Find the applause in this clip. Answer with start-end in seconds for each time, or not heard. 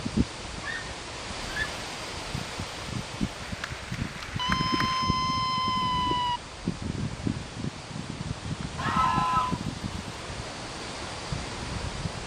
3.4-5.0.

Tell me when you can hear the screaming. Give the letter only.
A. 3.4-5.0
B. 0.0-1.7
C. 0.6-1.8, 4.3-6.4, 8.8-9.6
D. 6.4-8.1
C.